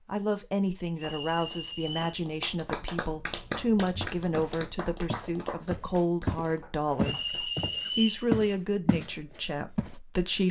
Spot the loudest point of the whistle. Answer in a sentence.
The volume of the whistle peaks at 8 seconds.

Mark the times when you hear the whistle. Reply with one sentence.
You can hear the whistle from 0.9 to 2.1 s and from 7.0 to 8.2 s.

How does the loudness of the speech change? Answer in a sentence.
The loudness of the speech stays about the same.